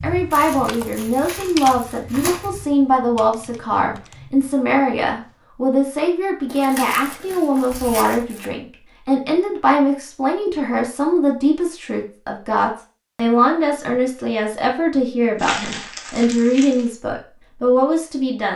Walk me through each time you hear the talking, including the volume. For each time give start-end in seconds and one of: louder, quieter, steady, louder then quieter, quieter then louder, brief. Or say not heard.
0.0-18.5 steady.